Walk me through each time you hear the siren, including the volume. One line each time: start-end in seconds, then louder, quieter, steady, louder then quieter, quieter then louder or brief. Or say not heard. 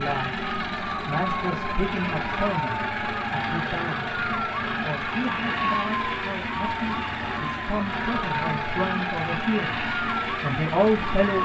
0.2-11.4 steady.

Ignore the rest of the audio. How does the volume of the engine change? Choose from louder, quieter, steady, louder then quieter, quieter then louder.
steady.